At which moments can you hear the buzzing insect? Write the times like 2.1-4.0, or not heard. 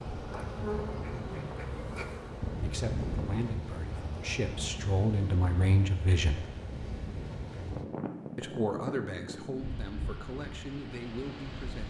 0.0-3.5.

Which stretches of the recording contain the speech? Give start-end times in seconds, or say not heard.
2.6-6.5, 8.3-11.8.